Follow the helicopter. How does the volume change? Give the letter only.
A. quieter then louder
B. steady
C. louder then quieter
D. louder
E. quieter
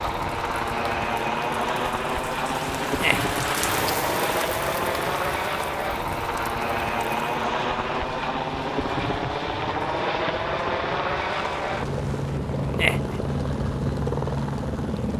B.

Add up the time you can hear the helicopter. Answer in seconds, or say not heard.
15 s.